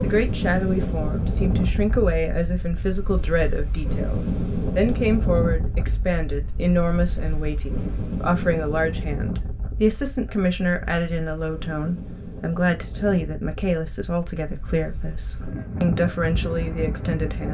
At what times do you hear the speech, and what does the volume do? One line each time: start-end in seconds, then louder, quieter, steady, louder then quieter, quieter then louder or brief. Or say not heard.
0.0-17.4 steady.